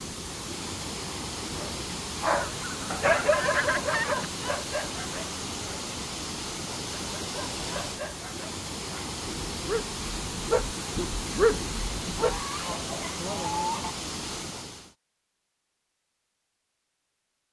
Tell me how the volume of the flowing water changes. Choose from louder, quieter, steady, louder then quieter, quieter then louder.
steady.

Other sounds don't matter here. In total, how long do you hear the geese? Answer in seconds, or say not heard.
4 s.